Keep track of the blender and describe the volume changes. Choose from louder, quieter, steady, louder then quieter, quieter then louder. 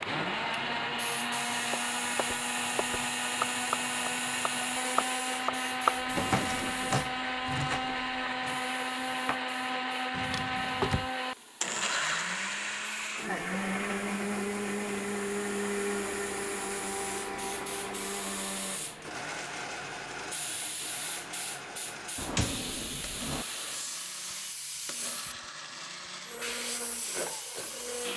quieter.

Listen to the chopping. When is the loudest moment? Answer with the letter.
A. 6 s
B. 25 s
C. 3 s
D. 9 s
A.